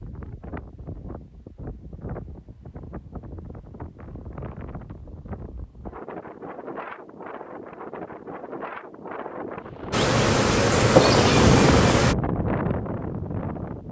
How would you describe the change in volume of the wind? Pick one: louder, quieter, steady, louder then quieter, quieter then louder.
louder.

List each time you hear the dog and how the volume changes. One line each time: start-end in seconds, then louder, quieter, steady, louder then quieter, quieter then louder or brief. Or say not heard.
not heard.